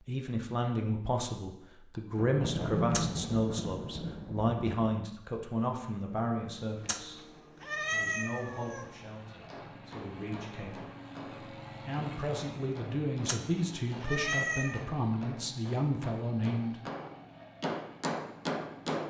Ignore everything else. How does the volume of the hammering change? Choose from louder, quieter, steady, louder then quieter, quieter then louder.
louder.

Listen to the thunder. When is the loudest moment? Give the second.
3 s.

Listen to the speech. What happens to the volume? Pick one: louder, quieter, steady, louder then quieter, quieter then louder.
quieter then louder.